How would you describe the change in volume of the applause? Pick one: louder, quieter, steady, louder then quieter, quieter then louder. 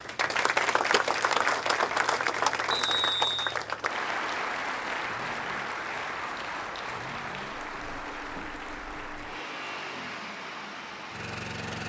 quieter.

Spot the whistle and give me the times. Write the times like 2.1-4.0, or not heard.
2.7-3.5.